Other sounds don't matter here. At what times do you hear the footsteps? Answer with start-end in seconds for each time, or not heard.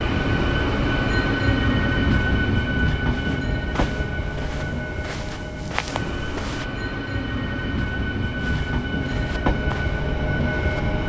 3.0-6.7, 8.3-10.8.